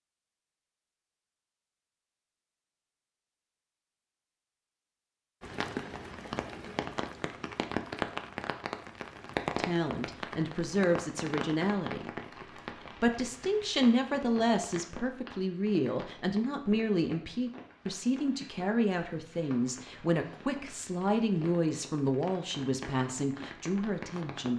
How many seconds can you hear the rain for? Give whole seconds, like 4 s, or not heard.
19 s.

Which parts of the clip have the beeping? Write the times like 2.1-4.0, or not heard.
not heard.